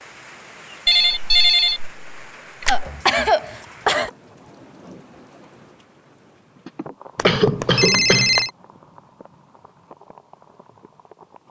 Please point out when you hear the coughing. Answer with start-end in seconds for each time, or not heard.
2.6-4.1, 6.7-8.3.